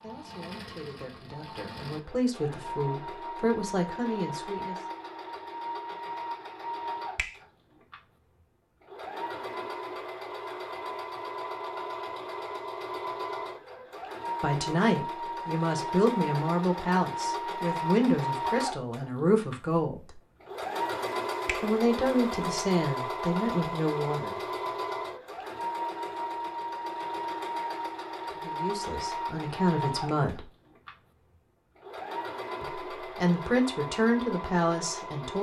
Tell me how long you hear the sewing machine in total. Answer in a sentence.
The sewing machine can be heard for 35 seconds in total.